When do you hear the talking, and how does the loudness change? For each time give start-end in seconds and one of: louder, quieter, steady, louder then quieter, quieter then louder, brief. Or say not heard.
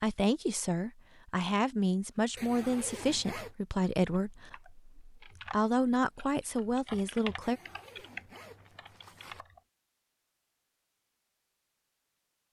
0.0-7.6 steady.